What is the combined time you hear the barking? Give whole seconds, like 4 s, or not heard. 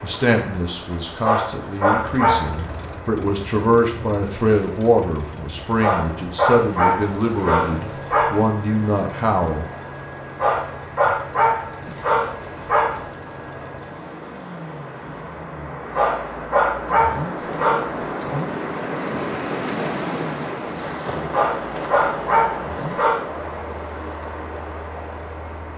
11 s.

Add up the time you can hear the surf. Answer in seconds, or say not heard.
26 s.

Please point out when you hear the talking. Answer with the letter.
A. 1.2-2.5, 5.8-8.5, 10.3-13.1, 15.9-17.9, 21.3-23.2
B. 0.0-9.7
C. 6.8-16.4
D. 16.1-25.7
B.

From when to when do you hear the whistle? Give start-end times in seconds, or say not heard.
not heard.